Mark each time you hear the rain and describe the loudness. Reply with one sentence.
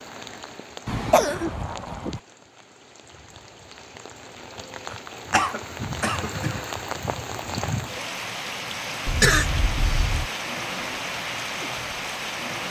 The rain can be heard from 0.0 to 12.6 s, getting louder.